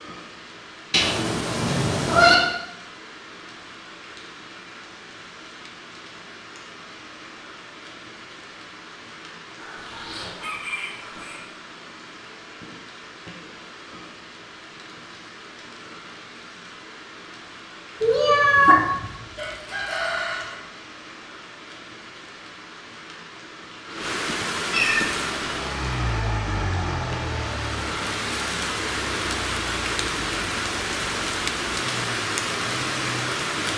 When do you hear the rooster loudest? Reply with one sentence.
The loudest moment of the rooster is at 20 seconds.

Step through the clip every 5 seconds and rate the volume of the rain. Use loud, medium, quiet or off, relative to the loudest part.
quiet, quiet, quiet, quiet, medium, loud, loud.